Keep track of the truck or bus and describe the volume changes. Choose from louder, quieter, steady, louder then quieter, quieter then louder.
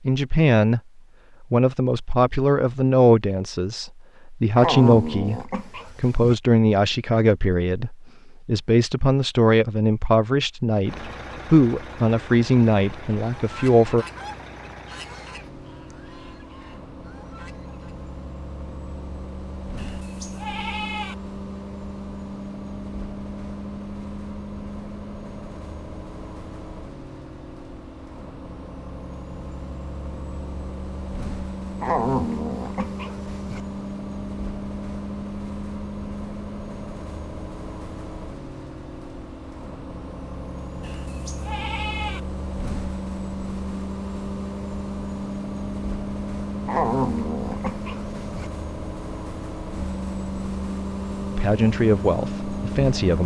louder.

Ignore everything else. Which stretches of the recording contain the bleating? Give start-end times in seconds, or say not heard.
19.8-21.1, 40.8-42.2.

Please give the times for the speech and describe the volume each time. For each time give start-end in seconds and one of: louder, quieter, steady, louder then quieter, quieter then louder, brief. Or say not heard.
0.1-0.8 brief
1.4-14.1 steady
51.4-53.2 brief.